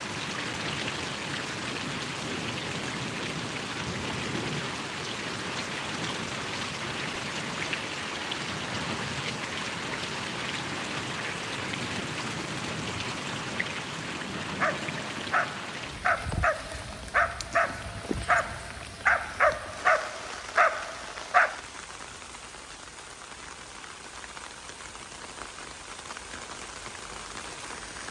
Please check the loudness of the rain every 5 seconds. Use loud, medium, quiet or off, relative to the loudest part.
loud, loud, loud, medium, medium, medium.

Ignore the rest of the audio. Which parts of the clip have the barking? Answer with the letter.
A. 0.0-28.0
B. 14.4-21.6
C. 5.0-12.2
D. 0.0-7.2
B.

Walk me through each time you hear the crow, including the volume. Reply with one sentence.
You can't hear the crow here.